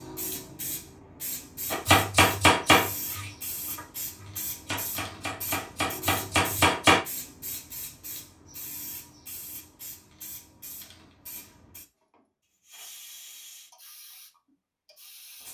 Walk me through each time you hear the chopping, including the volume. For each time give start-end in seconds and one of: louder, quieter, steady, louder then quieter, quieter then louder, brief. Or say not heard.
1.7-7.0 quieter then louder.